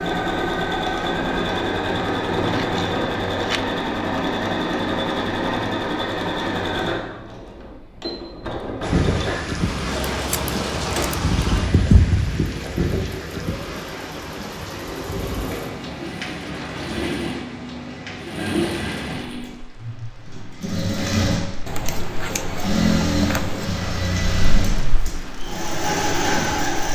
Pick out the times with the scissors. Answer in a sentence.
The scissors can be heard from 2.5 to 3.6 s, from 9.6 to 11.3 s and from 21.6 to 23.6 s.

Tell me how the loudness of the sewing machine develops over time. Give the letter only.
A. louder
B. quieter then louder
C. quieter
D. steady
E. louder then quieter
B.